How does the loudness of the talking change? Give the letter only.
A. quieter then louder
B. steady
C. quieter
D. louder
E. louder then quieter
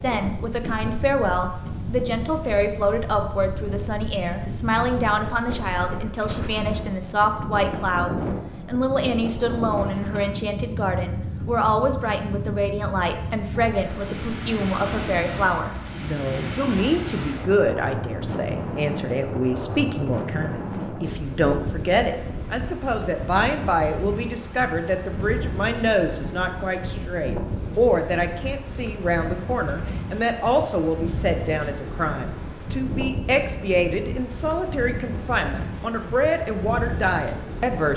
B.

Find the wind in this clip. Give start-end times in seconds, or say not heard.
0.0-37.9.